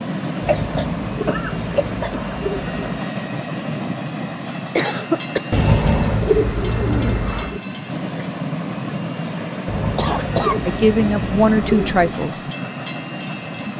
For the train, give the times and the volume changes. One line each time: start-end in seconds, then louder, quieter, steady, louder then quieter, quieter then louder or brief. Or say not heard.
0.0-13.7 steady.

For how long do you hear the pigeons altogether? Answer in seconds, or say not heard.
7 s.